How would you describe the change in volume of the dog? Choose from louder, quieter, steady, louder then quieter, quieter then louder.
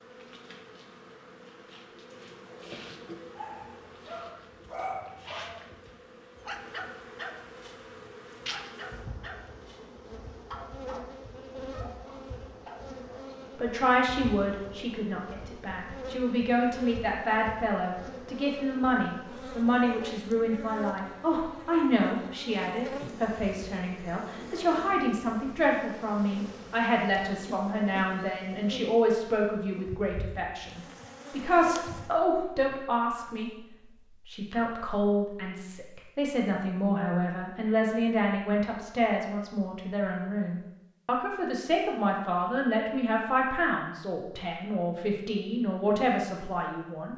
quieter.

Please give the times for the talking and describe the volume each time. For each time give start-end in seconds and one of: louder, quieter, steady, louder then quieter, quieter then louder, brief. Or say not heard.
13.6-47.1 steady.